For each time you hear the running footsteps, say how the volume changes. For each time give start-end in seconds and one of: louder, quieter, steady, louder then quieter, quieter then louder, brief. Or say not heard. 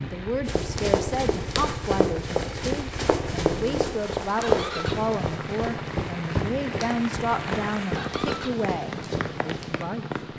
0.5-9.8 quieter.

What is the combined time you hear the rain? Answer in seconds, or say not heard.
10 s.